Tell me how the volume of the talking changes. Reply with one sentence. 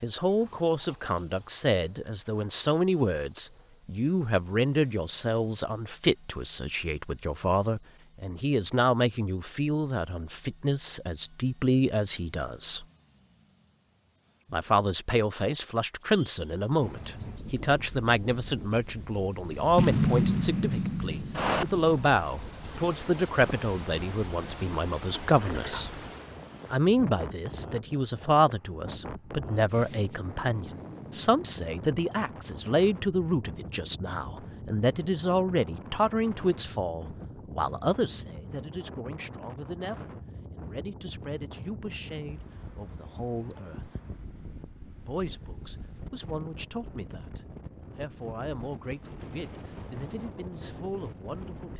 The loudness of the talking goes down.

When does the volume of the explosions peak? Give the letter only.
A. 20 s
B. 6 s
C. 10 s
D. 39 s
A.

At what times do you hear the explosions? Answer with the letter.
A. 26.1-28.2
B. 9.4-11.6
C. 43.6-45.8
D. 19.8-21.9
D.